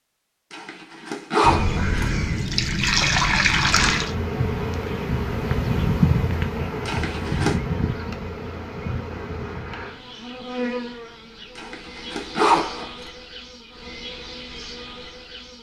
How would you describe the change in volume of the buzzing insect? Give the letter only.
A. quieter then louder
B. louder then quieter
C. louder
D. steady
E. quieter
E.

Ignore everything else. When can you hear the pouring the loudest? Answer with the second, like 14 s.
3 s.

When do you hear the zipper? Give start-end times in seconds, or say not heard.
0.5-2.1, 6.8-7.5, 11.6-12.9.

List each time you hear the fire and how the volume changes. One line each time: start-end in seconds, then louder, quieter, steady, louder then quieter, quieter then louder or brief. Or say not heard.
not heard.